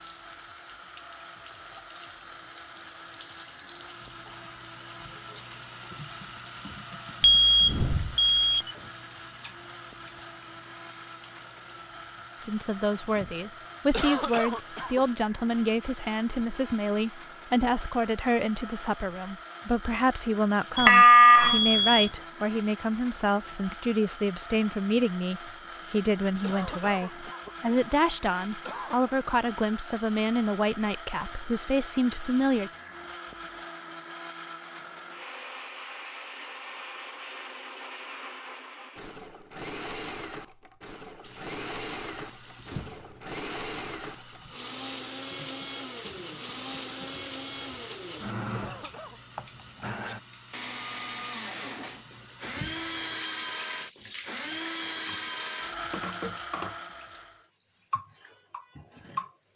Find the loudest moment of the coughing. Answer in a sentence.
The loudest moment of the coughing is at 14 seconds.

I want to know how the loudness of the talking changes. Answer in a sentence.
The loudness of the talking stays about the same.